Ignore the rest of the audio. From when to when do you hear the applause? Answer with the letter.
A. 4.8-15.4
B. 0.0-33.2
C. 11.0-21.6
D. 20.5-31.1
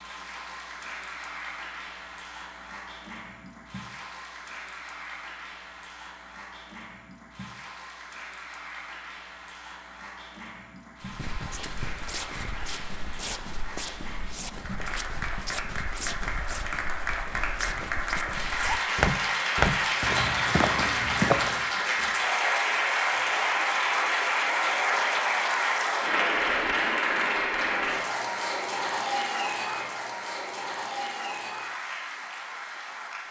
B.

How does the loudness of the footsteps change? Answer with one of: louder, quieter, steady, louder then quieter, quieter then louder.
louder.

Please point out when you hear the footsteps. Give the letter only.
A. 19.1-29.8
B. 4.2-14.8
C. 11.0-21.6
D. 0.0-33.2
C.